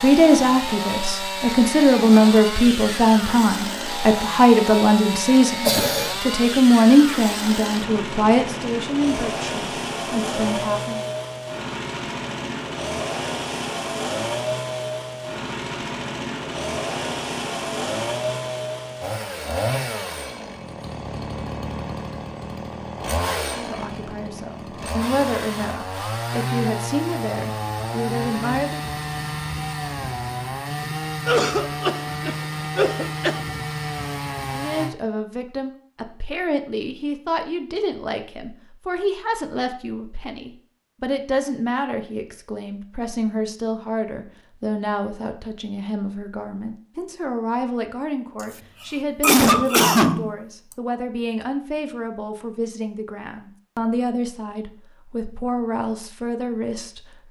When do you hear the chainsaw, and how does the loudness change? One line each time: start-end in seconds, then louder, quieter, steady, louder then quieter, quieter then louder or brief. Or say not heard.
0.0-35.0 steady.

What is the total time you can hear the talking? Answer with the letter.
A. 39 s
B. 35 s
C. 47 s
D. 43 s
A.